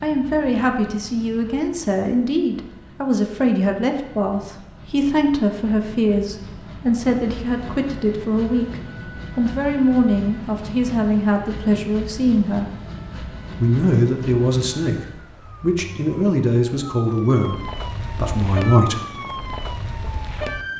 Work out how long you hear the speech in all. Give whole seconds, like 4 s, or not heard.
18 s.